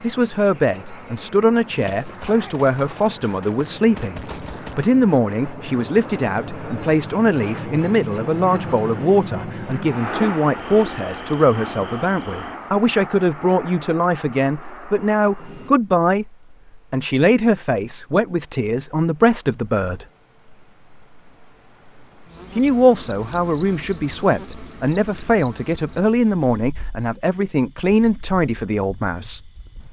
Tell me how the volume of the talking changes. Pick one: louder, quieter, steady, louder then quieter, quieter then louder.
steady.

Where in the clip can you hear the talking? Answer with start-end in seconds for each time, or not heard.
0.0-16.3, 16.9-20.1, 22.6-29.5.